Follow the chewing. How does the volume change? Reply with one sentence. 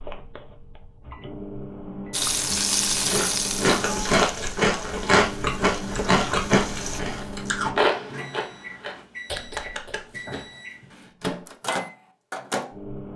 The loudness of the chewing goes down.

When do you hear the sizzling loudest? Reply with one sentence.
The loudest moment of the sizzling is at 3 seconds.